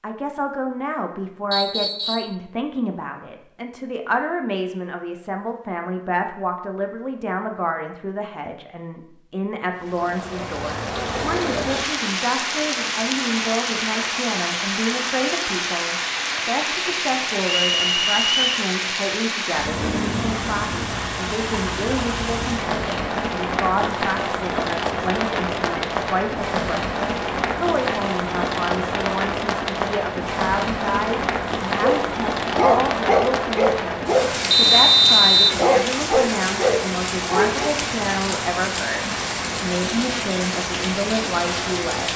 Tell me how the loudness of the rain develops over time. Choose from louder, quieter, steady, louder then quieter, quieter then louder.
steady.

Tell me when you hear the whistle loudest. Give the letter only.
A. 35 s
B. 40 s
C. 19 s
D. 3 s
A.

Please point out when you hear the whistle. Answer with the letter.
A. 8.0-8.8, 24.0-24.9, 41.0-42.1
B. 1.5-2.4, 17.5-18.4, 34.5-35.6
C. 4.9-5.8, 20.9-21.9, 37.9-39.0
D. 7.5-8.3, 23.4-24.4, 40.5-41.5
B.